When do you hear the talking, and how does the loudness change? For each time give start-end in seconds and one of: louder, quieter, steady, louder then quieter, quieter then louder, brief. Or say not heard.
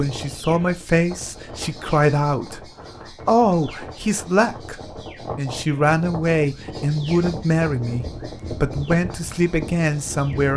0.0-2.6 brief
3.2-10.5 steady.